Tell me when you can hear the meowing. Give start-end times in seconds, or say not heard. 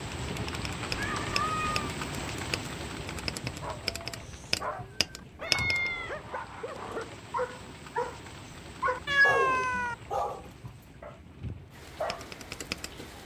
0.9-1.9, 5.3-6.2, 9.1-9.9.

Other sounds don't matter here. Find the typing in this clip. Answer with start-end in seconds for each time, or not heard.
0.2-5.9, 11.4-13.2.